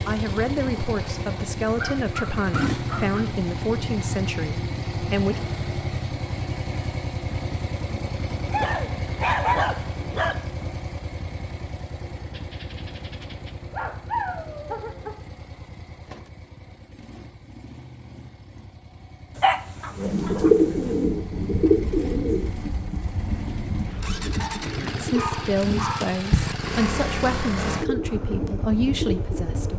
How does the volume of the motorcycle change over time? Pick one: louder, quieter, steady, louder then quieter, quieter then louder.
quieter then louder.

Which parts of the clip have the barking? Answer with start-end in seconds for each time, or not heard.
1.8-3.2, 8.5-10.3, 12.3-15.2, 19.4-20.9, 24.4-26.1.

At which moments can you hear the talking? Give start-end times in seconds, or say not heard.
0.1-5.4, 24.8-29.7.